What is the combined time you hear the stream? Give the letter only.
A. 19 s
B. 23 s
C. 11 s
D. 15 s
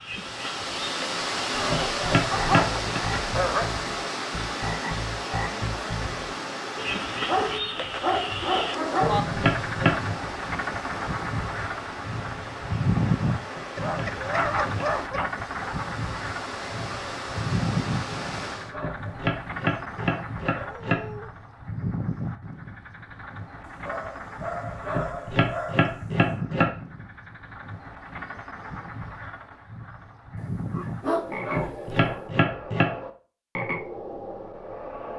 A.